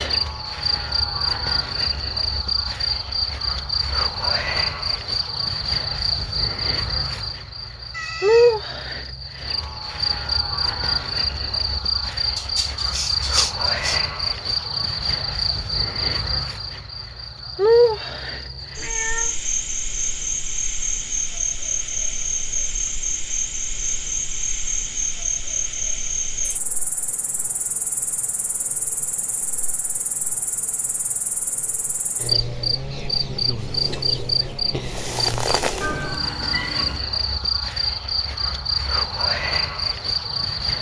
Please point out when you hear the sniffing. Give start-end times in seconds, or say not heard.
12.3-14.0.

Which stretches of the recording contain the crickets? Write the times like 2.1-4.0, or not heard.
0.0-40.7.